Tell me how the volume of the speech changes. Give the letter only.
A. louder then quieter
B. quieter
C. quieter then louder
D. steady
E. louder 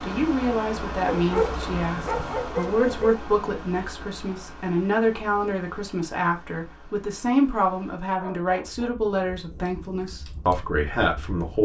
D.